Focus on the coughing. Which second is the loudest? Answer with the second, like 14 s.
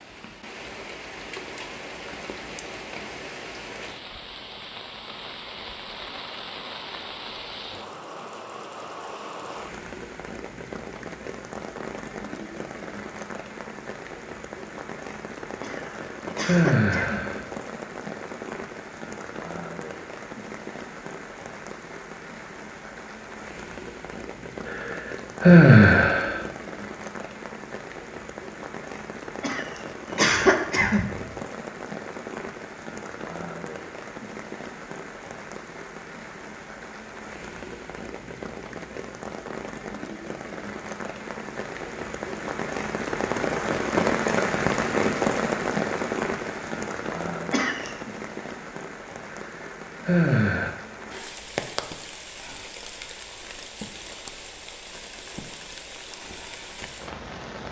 30 s.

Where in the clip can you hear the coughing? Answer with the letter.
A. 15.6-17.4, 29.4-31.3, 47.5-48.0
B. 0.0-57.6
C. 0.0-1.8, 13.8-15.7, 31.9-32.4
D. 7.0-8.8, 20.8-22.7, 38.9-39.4
A.